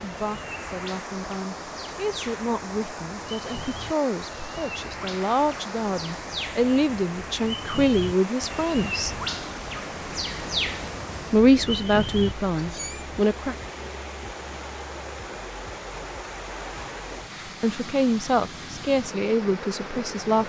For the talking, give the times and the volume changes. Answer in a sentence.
You can hear the talking from 0.0 to 9.2 s, getting louder; briefly from 11.3 to 13.6 s; and briefly from 17.6 to 20.4 s.